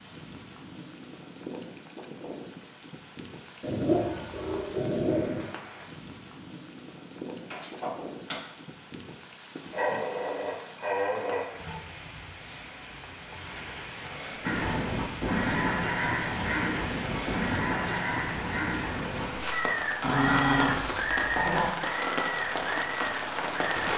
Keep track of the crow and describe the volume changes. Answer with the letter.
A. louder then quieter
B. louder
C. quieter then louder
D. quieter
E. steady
D.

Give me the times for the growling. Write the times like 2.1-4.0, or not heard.
3.6-5.5, 9.7-11.4, 20.0-21.7.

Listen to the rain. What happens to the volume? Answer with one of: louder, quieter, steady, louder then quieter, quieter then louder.
louder.